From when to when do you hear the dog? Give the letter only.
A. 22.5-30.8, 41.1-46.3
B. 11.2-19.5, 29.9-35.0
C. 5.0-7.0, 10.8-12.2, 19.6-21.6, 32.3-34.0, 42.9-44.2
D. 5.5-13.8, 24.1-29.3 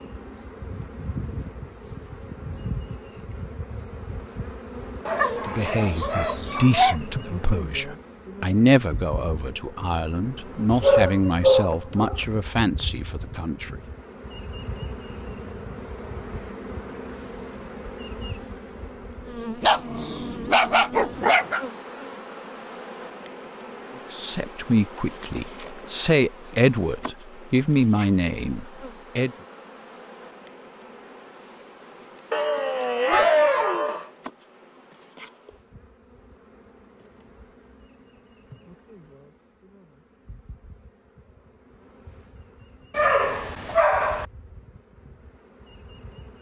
C.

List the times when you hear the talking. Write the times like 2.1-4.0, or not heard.
5.5-13.8, 24.1-29.3.